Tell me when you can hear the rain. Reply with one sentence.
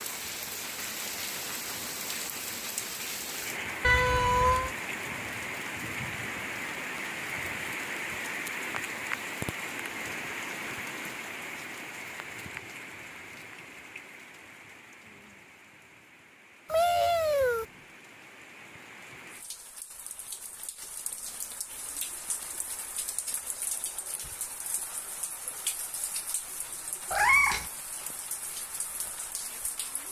You can hear the rain from 0.0 to 30.0 s.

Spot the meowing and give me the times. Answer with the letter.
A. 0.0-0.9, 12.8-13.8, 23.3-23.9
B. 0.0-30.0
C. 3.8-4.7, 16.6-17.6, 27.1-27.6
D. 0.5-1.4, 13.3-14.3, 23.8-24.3
C.